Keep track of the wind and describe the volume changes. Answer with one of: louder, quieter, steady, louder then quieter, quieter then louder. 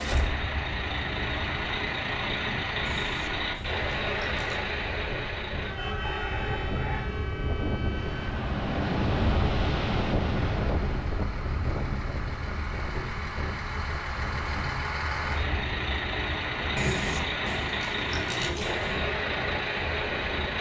louder then quieter.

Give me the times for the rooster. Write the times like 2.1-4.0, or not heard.
5.9-7.0.